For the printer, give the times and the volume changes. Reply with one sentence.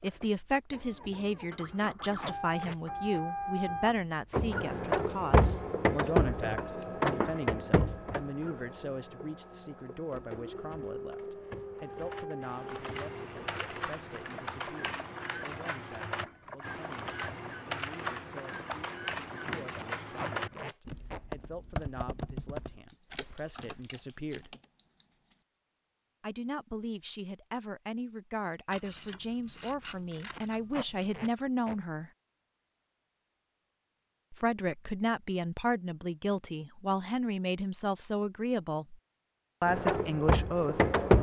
The printer can be heard from 0.0 to 20.7 s, getting louder then quieter; and briefly from 39.6 to 41.1 s.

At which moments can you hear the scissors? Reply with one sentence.
You can hear the scissors from 6.0 to 7.4 s, from 22.9 to 25.4 s and from 28.7 to 31.2 s.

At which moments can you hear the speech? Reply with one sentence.
The speech can be heard from 0.0 to 24.6 s, from 26.2 to 32.1 s, from 34.3 to 39.0 s and from 39.6 to 40.9 s.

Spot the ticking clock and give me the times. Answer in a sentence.
The ticking clock can't be heard in this clip.